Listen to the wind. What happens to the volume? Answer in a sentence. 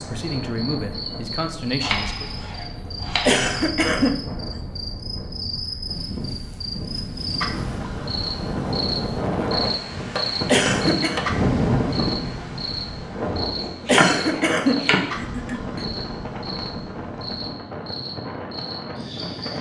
The loudness of the wind goes up, then down.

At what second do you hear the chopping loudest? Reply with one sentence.
The loudest moment of the chopping is at 14 seconds.